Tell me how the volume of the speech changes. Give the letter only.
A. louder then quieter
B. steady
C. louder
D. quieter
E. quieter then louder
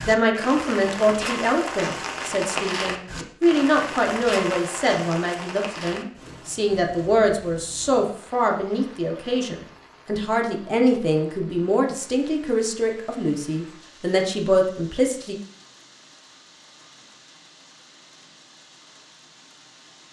B.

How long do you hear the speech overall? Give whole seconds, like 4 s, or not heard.
15 s.